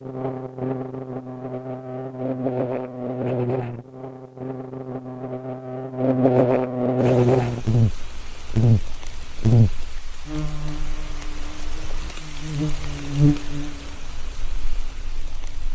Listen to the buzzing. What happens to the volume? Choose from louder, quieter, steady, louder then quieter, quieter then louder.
louder then quieter.